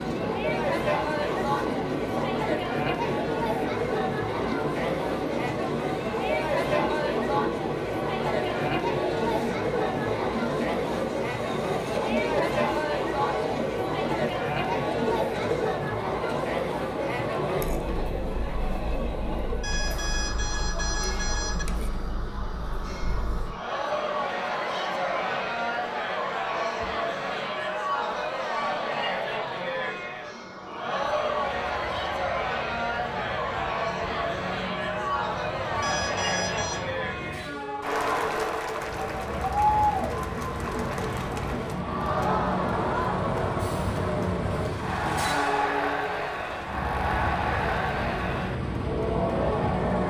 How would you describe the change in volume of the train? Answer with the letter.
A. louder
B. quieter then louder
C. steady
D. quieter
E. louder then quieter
B.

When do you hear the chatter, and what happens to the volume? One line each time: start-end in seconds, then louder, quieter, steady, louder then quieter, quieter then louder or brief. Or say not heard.
0.0-50.0 steady.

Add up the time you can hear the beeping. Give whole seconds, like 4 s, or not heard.
3 s.